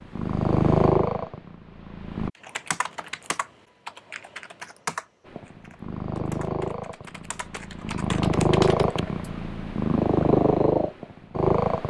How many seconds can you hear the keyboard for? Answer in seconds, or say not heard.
7 s.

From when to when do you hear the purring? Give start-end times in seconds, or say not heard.
0.1-2.3, 5.3-11.8.